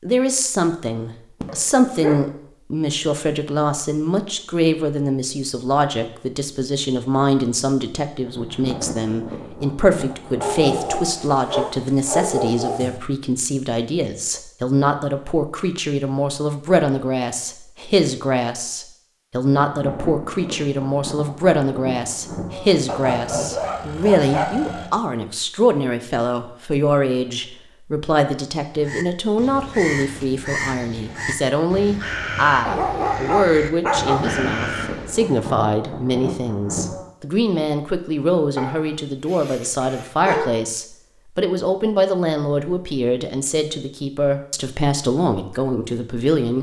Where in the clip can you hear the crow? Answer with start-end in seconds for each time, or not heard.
28.7-35.4.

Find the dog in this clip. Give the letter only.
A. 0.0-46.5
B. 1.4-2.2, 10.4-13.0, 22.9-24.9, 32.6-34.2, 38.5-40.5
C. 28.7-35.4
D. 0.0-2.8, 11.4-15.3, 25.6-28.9
B.